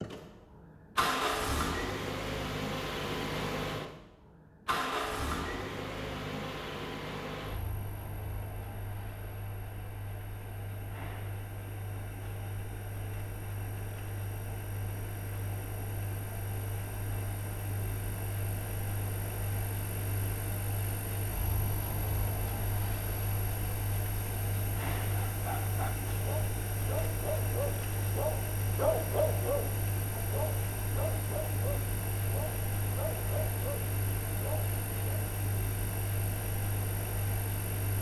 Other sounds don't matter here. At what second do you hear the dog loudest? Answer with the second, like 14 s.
29 s.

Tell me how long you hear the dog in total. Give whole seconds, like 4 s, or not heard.
10 s.